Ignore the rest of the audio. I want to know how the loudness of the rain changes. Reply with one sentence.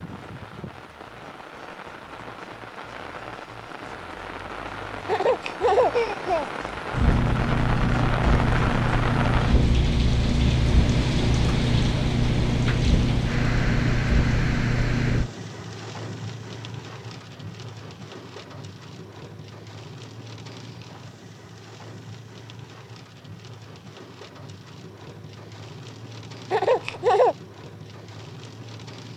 The volume of the rain goes up, then down.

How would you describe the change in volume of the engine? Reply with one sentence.
The loudness of the engine stays about the same.